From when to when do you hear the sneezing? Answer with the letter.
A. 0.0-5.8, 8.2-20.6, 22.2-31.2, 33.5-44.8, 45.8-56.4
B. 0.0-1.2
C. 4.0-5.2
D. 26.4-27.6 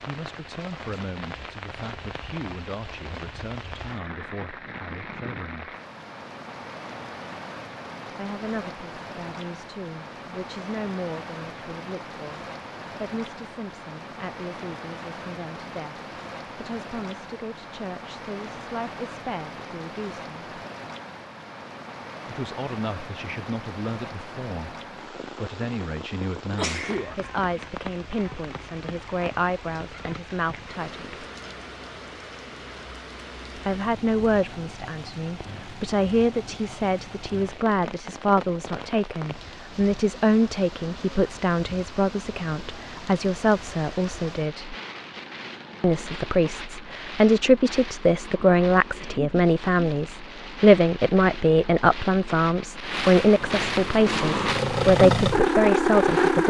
D.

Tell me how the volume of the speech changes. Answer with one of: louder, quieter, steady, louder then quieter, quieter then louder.
louder.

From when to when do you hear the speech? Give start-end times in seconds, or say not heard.
0.0-5.8, 8.2-20.6, 22.2-31.2, 33.5-44.8, 45.8-56.4.